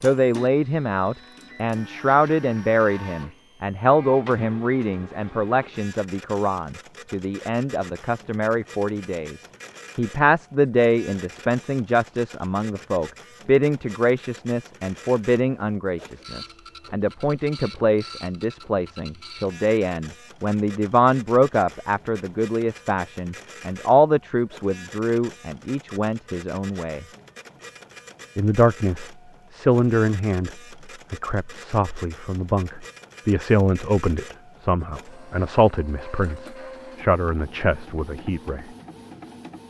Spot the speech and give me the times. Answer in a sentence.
The speech can be heard from 0.0 to 27.1 s, from 28.4 to 30.5 s and from 31.1 to 38.6 s.